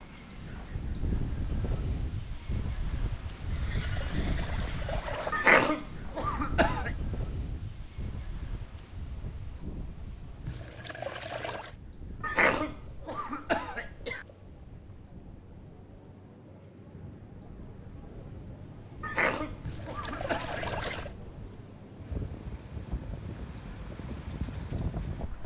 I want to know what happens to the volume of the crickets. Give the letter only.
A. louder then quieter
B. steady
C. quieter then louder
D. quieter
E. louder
C.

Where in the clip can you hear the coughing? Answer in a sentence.
The coughing can be heard from 5.3 to 6.9 s, from 12.2 to 14.2 s and from 19.0 to 20.9 s.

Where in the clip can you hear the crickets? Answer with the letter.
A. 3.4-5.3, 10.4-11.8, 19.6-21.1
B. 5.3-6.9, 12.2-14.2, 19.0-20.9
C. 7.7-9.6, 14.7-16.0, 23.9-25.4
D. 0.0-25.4
D.